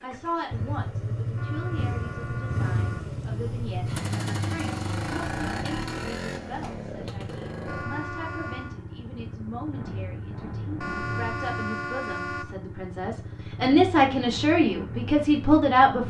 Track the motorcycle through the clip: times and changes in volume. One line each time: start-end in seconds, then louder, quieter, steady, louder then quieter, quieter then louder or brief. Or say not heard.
0.0-16.0 quieter.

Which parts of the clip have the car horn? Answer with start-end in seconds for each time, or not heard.
1.4-3.1, 7.7-8.8, 10.8-12.6.